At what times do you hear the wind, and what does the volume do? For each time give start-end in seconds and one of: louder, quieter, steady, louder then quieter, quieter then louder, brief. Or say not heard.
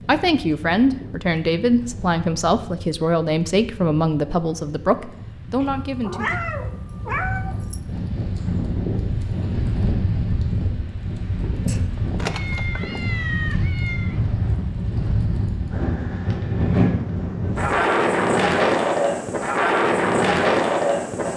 0.0-21.3 louder.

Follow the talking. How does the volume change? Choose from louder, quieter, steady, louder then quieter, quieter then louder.
steady.